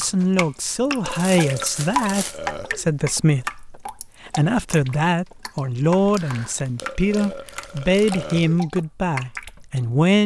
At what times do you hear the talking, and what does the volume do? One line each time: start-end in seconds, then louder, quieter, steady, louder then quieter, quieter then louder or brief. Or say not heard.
0.0-10.2 steady.